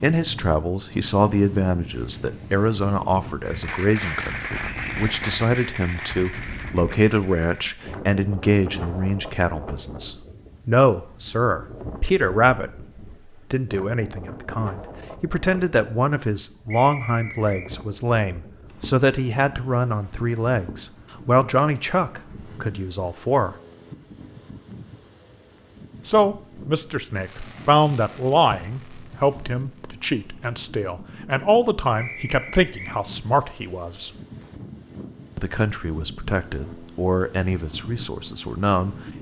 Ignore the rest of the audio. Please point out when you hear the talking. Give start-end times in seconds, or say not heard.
0.0-23.6, 26.1-34.1, 35.4-39.0.